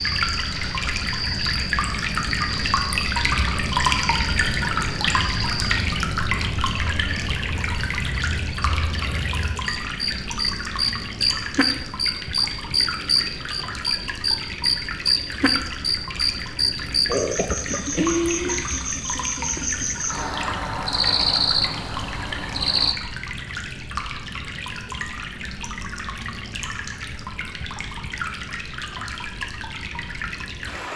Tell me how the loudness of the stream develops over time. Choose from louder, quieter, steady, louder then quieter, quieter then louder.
quieter.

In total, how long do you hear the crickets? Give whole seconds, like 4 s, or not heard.
23 s.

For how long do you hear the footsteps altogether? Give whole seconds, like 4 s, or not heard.
not heard.